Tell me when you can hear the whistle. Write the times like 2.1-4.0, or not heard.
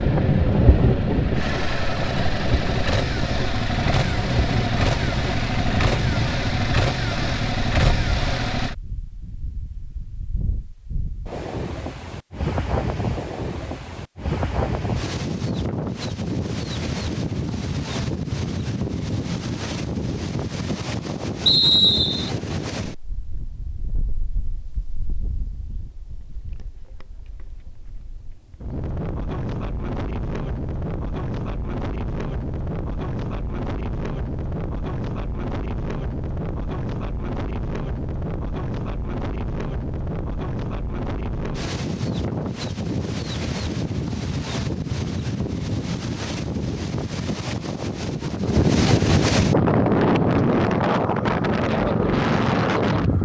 21.4-22.3.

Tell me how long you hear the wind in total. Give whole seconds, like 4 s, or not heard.
53 s.